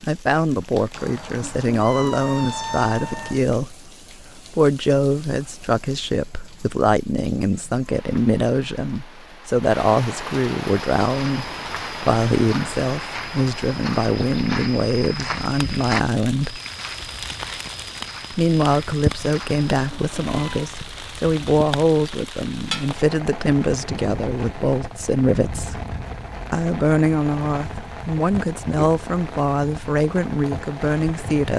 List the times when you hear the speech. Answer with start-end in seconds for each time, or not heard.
0.0-16.6, 18.3-25.9, 26.5-31.5.